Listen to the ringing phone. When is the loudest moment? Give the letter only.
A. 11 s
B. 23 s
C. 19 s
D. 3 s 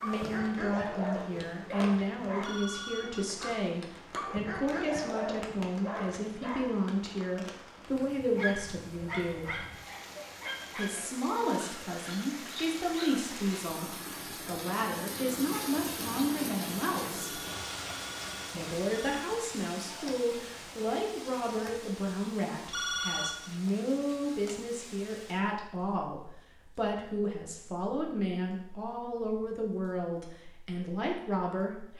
B.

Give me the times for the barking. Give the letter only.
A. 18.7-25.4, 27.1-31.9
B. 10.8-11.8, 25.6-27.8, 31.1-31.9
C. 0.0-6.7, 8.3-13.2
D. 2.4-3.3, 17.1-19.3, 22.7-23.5
C.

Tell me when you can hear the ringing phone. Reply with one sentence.
The ringing phone can be heard from 2.4 to 3.3 s, from 17.1 to 19.3 s and from 22.7 to 23.5 s.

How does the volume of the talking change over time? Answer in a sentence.
The volume of the talking stays about the same.